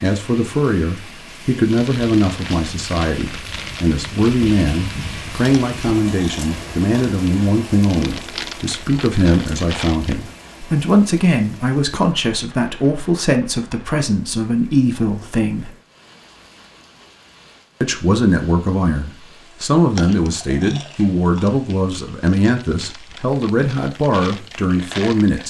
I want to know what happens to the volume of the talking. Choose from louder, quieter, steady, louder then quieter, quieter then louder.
steady.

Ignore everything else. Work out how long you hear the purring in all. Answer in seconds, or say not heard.
not heard.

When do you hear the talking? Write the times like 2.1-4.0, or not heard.
0.0-15.7, 17.8-25.4.